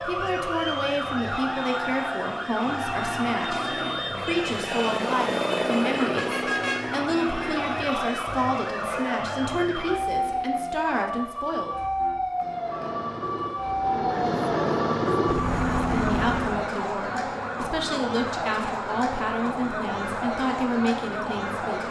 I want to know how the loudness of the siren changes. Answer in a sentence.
The volume of the siren stays about the same.